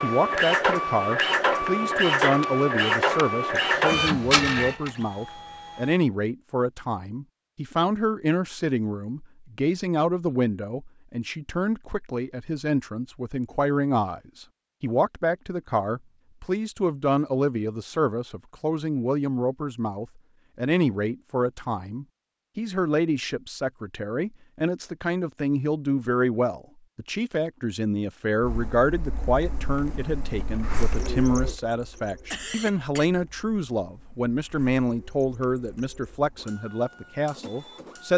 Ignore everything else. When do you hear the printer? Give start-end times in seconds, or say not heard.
0.0-6.0, 28.4-38.1.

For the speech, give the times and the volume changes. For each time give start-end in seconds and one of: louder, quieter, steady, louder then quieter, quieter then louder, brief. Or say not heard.
0.0-38.1 steady.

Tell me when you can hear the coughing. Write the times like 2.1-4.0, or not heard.
32.3-33.1.